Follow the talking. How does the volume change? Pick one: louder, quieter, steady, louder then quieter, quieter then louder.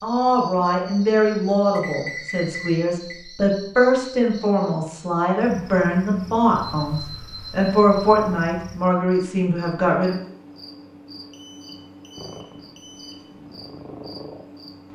steady.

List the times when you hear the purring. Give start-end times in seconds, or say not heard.
12.2-14.9.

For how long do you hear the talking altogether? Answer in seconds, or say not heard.
10 s.